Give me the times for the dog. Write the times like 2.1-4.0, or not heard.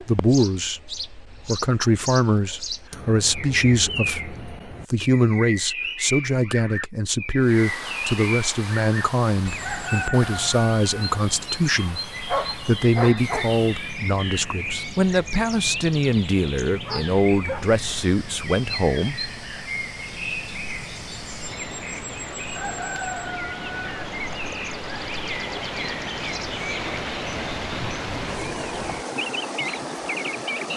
11.8-13.6, 16.9-17.8.